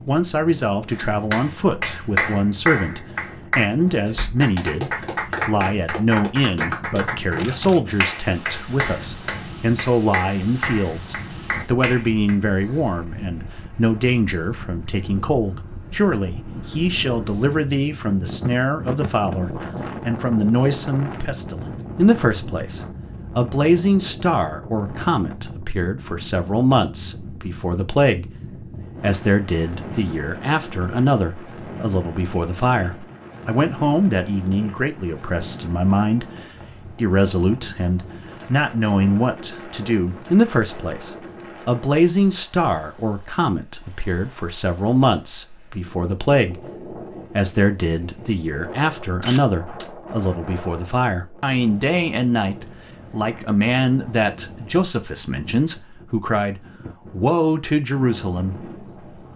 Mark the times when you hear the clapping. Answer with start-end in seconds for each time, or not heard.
0.9-12.3.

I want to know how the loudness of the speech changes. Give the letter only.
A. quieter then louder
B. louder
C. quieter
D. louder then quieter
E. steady
E.